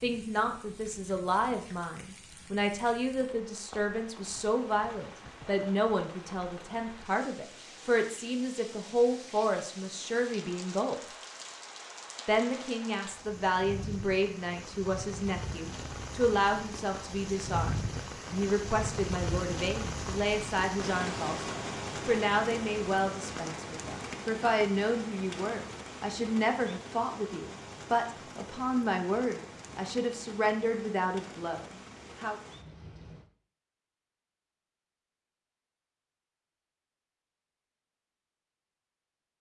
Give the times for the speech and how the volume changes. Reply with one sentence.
The speech can be heard from 0.0 to 10.9 s, at a steady volume; and from 12.2 to 32.4 s, at a steady volume.